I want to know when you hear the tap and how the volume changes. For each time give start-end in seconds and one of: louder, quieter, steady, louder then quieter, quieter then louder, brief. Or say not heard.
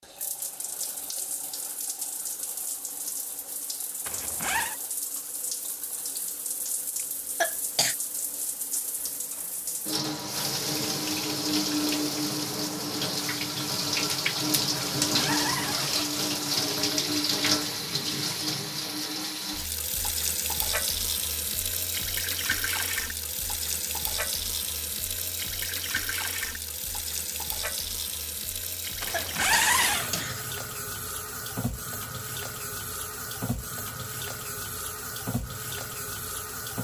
0.0-36.8 louder then quieter.